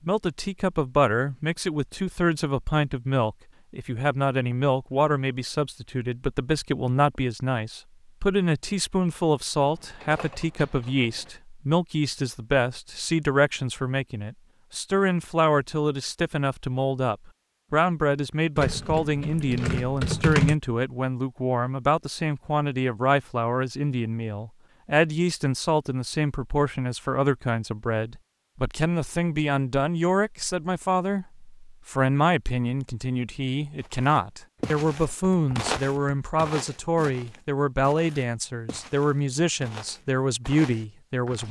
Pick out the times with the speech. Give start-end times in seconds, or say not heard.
0.0-41.4.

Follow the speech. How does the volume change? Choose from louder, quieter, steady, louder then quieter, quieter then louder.
steady.